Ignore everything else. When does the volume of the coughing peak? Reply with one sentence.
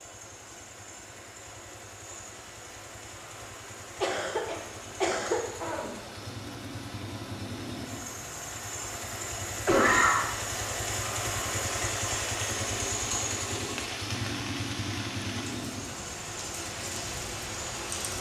The loudest moment of the coughing is at 10 seconds.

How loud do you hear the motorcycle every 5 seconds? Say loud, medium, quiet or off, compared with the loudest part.
quiet, medium, loud, medium.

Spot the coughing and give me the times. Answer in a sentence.
You can hear the coughing from 4.0 to 6.0 s and from 9.7 to 10.3 s.